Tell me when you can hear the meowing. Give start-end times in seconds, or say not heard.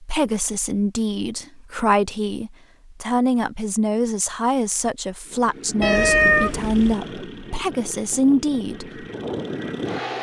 5.8-7.0.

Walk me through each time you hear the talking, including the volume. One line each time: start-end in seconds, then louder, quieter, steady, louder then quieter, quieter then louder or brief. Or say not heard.
0.0-9.1 steady.